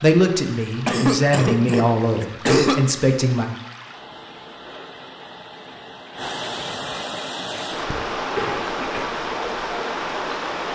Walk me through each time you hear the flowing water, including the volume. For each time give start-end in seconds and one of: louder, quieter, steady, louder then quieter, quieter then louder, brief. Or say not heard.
0.0-10.7 louder.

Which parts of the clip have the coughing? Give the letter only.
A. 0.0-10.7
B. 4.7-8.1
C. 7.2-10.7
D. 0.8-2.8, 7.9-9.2
D.